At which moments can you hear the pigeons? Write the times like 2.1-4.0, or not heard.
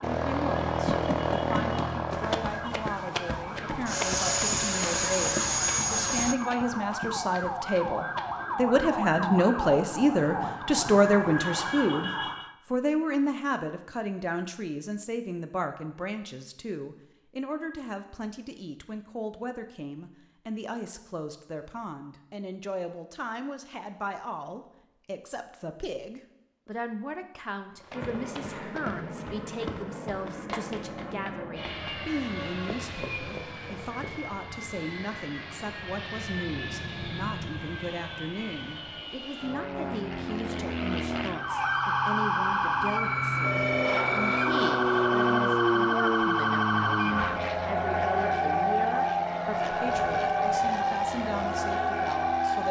not heard.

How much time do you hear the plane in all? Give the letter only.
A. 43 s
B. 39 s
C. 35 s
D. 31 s
D.